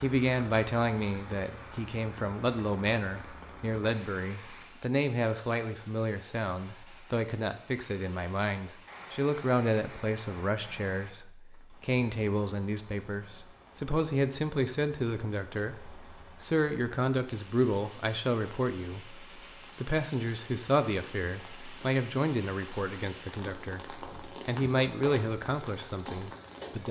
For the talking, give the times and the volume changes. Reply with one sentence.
You can hear the talking from 0.0 to 26.8 s, at a steady volume.